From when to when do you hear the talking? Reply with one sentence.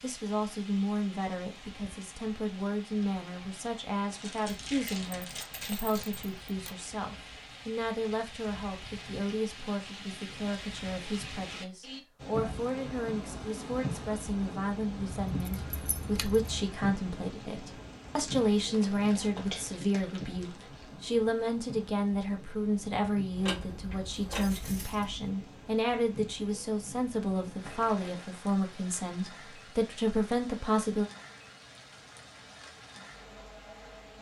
You can hear the talking from 0.0 to 31.1 s.